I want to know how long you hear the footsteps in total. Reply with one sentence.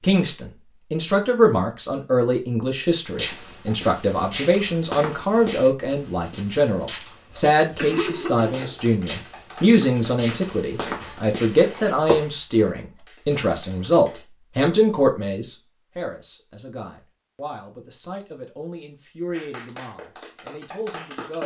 You can hear the footsteps for 9 seconds altogether.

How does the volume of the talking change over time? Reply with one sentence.
The loudness of the talking goes down.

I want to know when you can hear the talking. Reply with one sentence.
The talking can be heard from 0.0 to 21.4 s.